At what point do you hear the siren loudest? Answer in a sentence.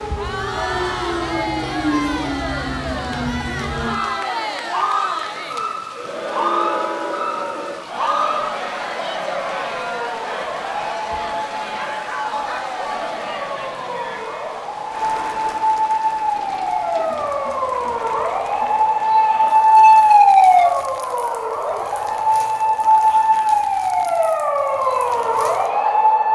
The volume of the siren peaks at 20 seconds.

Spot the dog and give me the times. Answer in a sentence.
The dog can be heard from 11.7 to 13.2 s.